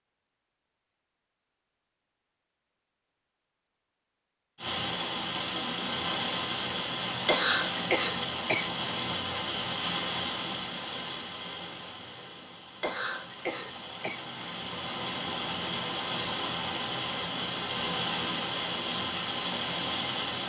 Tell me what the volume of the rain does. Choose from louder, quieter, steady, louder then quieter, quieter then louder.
quieter then louder.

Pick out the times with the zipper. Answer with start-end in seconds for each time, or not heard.
not heard.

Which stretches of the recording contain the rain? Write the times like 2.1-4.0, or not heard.
4.5-20.4.